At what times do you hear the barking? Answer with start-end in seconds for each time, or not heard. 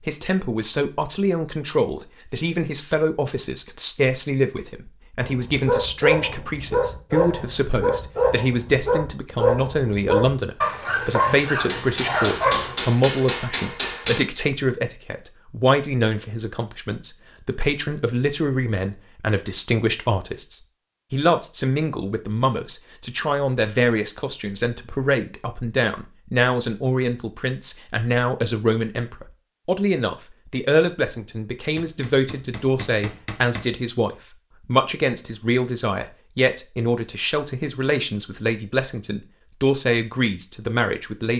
5.2-12.8.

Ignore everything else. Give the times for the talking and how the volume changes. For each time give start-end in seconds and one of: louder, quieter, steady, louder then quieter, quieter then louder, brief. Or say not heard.
0.0-41.3 steady.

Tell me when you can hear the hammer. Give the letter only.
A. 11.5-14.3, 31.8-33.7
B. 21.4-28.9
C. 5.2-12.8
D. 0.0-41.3
A.